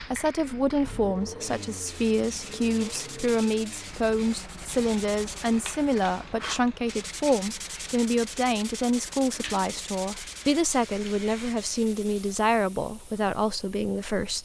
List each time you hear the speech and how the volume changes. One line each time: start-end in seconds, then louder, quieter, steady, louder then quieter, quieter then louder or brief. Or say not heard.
0.0-14.4 steady.